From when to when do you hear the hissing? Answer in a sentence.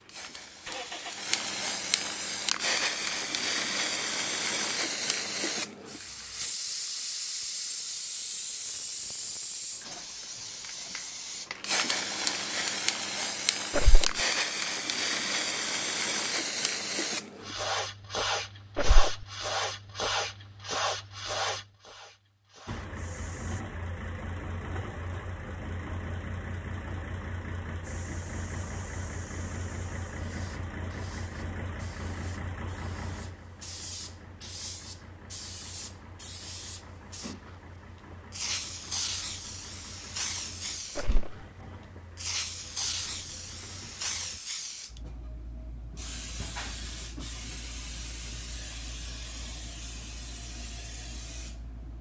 The hissing can be heard from 0.0 to 23.6 s and from 27.8 to 51.9 s.